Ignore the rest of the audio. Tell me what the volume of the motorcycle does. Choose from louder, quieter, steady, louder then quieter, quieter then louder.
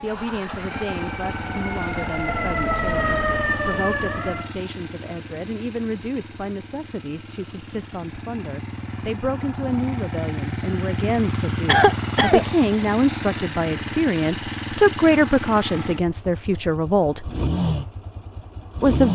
quieter then louder.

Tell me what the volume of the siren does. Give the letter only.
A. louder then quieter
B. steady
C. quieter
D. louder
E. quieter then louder
D.